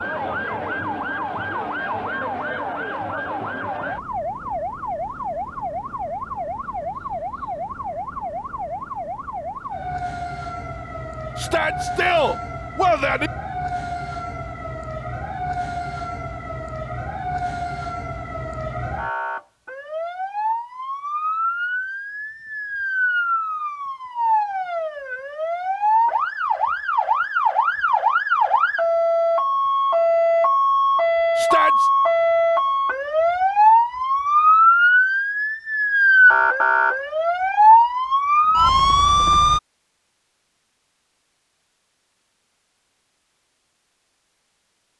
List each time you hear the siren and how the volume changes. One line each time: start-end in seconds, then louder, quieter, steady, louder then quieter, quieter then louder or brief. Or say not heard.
0.0-39.6 louder.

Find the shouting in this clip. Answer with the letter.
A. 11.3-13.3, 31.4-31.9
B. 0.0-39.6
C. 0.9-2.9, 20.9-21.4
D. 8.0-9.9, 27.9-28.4
A.